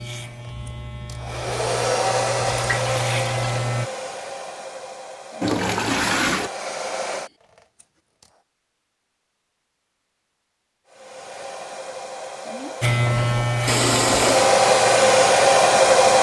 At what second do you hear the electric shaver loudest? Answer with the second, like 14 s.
13 s.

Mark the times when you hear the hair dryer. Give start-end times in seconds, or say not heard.
1.1-7.3, 10.8-16.1.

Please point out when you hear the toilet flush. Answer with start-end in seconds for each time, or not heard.
2.5-3.5, 5.4-6.5, 13.7-14.6.